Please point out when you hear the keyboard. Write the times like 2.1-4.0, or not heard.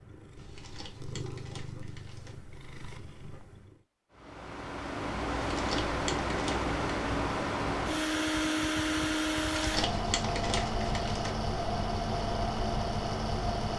not heard.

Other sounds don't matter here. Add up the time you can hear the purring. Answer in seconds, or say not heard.
4 s.